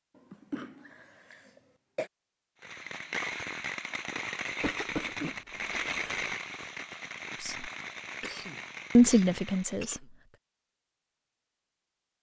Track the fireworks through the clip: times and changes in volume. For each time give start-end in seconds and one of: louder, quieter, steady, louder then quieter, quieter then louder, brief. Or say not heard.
2.6-9.9 quieter.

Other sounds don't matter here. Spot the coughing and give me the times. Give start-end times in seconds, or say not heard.
0.1-2.1, 4.6-6.3, 8.2-10.1.